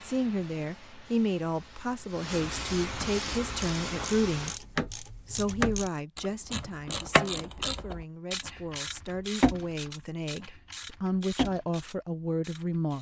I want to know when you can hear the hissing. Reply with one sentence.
The hissing can be heard from 0.0 to 4.6 s.